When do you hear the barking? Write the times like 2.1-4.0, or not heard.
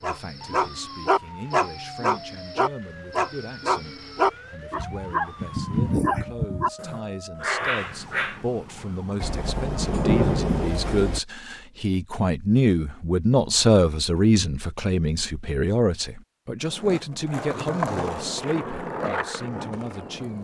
0.0-8.4.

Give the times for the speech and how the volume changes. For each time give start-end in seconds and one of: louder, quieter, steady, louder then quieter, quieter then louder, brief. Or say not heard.
0.0-20.3 louder then quieter.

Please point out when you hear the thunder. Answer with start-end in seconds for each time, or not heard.
9.2-11.2.